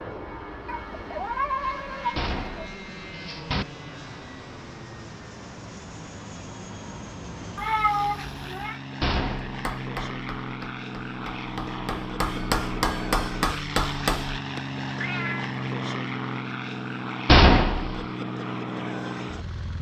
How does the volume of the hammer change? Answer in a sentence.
The loudness of the hammer goes up.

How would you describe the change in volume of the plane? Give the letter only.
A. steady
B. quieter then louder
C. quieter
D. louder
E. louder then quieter
D.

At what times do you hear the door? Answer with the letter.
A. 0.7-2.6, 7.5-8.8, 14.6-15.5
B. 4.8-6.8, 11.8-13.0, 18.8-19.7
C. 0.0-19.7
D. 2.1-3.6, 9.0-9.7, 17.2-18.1
D.